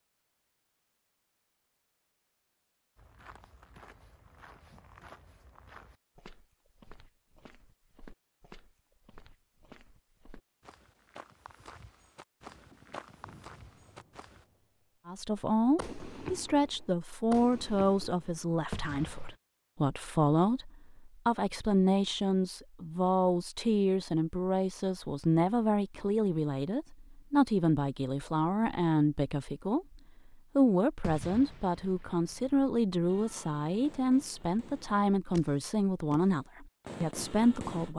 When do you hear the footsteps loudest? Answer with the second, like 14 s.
13 s.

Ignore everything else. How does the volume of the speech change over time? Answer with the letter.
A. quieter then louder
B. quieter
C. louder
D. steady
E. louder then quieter
D.